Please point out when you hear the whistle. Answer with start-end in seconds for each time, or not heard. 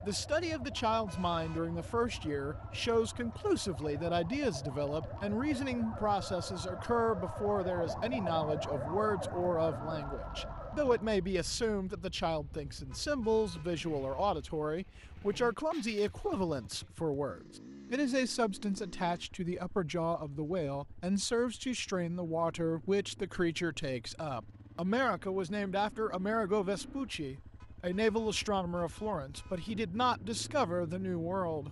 not heard.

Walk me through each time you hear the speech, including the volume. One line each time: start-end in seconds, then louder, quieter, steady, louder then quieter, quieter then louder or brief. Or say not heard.
0.0-31.6 steady.